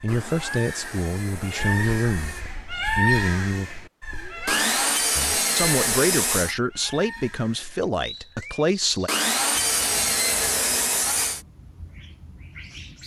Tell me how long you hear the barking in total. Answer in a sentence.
The barking can't be heard in this clip.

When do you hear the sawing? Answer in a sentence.
The sawing can be heard from 0.1 to 2.5 s, from 4.5 to 6.5 s and from 9.1 to 11.4 s.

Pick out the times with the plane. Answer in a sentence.
The plane can't be heard in this clip.